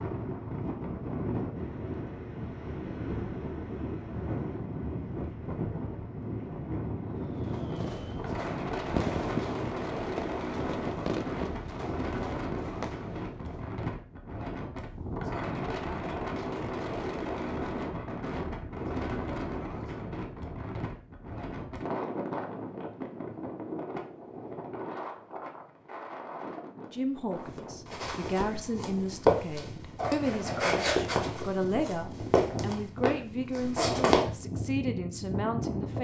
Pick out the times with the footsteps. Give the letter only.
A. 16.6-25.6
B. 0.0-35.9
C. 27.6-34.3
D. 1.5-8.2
C.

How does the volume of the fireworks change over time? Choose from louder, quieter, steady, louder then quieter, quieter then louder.
louder then quieter.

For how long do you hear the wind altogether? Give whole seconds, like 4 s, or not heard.
36 s.